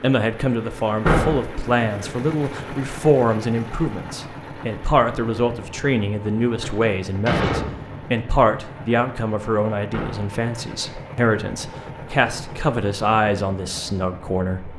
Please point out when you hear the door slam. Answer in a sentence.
The door slam can be heard from 1.1 to 1.5 s, from 6.6 to 8.1 s and from 9.9 to 10.3 s.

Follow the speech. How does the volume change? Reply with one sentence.
The loudness of the speech stays about the same.